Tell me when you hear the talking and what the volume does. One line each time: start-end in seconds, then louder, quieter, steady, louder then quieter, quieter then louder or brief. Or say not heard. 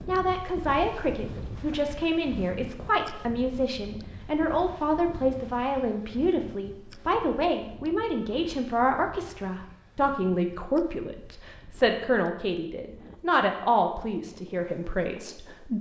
0.1-15.7 steady.